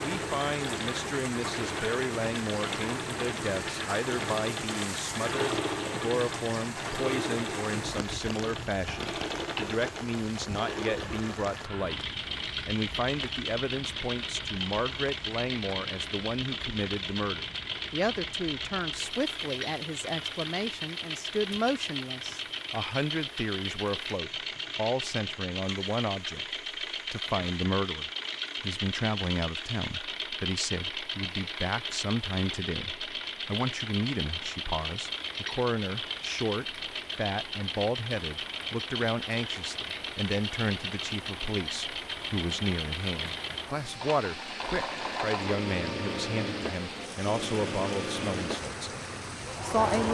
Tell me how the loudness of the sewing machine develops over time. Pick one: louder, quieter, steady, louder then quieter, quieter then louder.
steady.